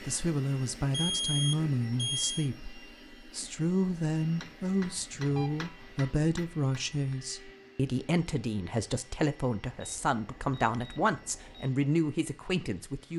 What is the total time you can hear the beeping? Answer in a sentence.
You can hear the beeping for 4 seconds altogether.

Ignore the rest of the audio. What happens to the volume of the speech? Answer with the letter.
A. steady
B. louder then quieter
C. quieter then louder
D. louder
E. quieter
A.